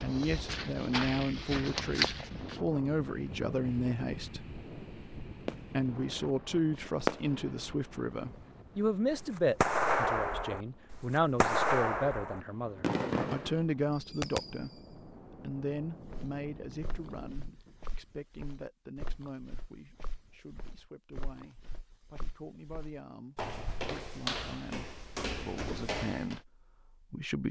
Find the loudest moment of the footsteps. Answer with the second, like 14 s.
2 s.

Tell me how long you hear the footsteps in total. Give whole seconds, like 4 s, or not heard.
13 s.